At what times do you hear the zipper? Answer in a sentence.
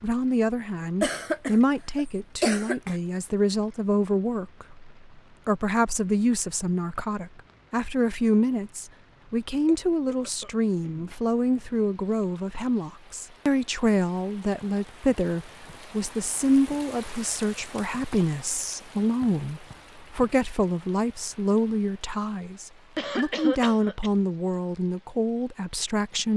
You can't hear the zipper here.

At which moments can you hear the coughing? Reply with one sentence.
You can hear the coughing from 1.0 to 3.0 s, from 9.7 to 11.2 s and from 22.9 to 24.1 s.